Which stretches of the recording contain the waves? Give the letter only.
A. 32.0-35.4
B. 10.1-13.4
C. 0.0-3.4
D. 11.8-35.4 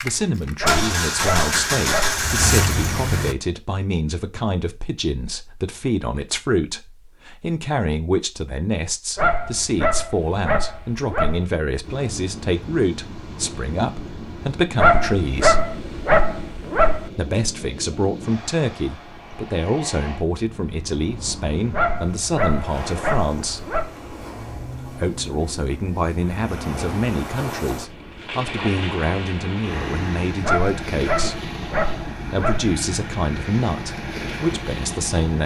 D.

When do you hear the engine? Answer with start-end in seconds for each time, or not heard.
0.0-3.4.